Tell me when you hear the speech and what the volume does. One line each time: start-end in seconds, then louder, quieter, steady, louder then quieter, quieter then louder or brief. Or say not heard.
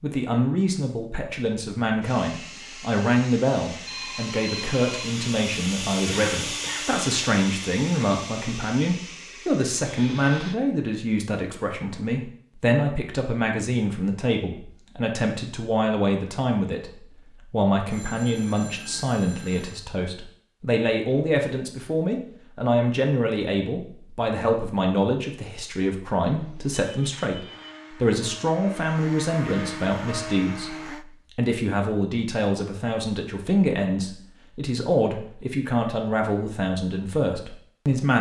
0.0-38.1 steady.